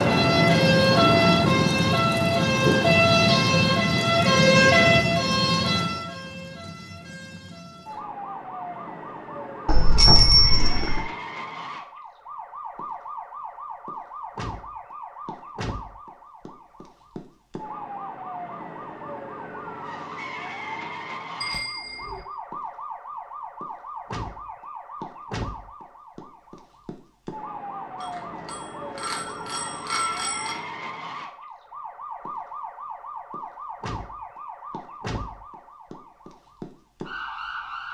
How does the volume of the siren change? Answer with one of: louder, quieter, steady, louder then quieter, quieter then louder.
quieter.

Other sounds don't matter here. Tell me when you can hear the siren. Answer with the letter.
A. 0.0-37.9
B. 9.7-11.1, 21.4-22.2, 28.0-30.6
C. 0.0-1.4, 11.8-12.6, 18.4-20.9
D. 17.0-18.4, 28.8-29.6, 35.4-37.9
A.